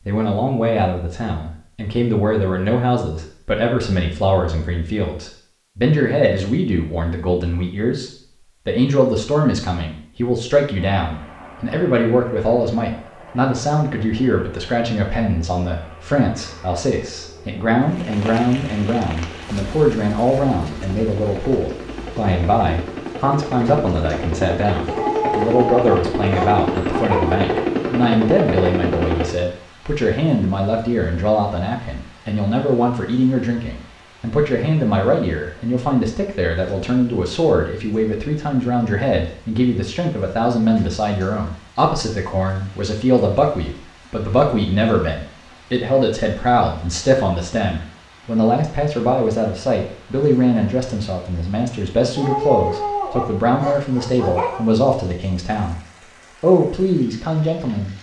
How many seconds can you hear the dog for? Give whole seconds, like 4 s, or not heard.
5 s.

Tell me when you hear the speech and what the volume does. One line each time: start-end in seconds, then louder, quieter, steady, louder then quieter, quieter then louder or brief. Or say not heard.
0.1-55.8 steady
56.4-57.9 brief.